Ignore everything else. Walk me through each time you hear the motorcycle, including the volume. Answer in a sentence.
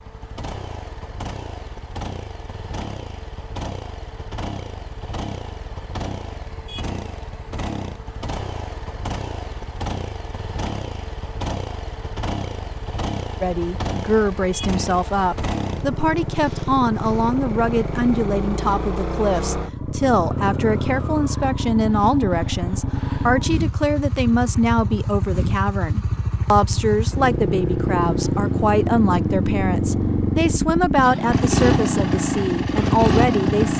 You can hear the motorcycle from 0.0 to 33.7 s, getting louder.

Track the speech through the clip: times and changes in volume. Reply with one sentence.
The speech can be heard from 13.4 to 33.7 s, at a steady volume.